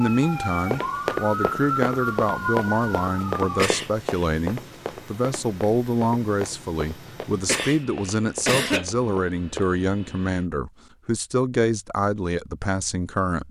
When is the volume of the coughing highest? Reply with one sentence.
The loudest moment of the coughing is at 9 seconds.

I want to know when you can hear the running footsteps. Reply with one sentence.
The running footsteps can be heard from 0.5 to 9.7 s.